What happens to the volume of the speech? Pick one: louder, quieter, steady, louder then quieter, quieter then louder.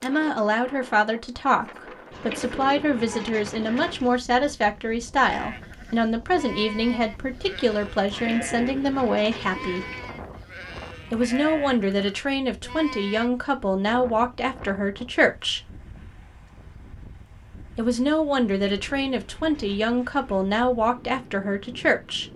steady.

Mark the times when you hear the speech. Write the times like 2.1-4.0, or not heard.
0.0-9.8, 11.1-15.7, 17.8-22.3.